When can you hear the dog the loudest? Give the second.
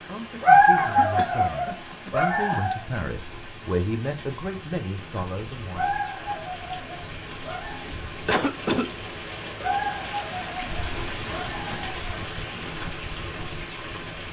1 s.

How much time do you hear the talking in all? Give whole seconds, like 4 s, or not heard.
6 s.